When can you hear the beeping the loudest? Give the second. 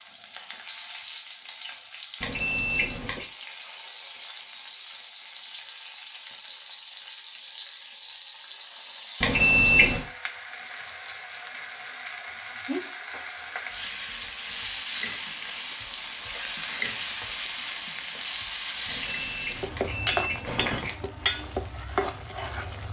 10 s.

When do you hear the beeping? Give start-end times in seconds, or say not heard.
2.2-3.3, 9.2-10.0, 18.9-20.9.